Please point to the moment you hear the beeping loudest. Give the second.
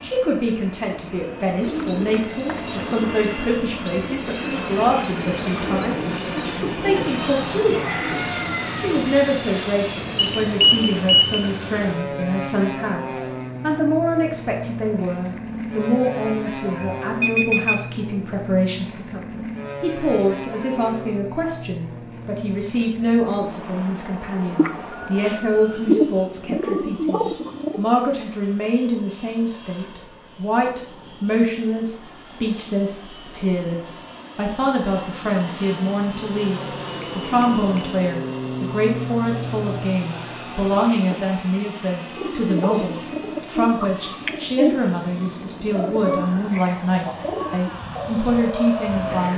11 s.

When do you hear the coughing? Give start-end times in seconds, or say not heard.
not heard.